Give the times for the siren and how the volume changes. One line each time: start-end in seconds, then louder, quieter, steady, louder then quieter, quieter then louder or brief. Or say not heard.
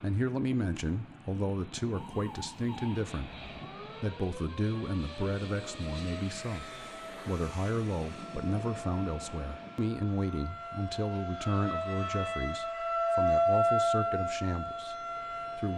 1.9-15.7 louder.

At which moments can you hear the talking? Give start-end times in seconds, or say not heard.
0.0-15.7.